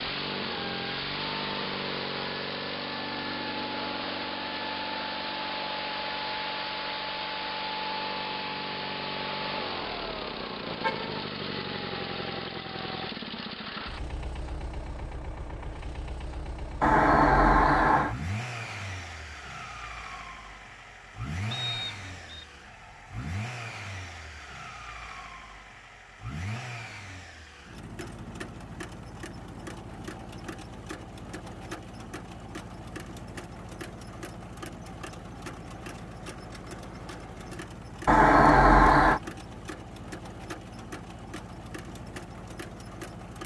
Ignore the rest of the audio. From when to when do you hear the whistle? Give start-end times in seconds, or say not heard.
21.5-22.4.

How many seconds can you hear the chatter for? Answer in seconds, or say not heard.
not heard.